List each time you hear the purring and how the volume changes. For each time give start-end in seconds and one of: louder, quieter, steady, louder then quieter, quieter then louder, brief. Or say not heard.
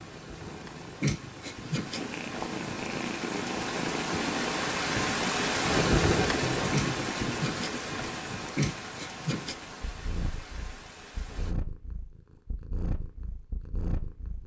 0.2-14.4 quieter.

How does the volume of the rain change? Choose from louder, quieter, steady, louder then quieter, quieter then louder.
louder then quieter.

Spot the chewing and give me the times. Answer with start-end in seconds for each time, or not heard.
not heard.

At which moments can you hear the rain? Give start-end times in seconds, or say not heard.
0.0-11.6.